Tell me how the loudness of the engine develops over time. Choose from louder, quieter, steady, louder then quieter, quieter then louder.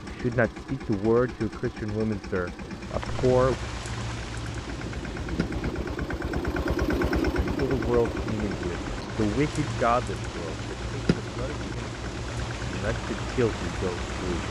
louder then quieter.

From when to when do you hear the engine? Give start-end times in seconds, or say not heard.
0.0-14.4.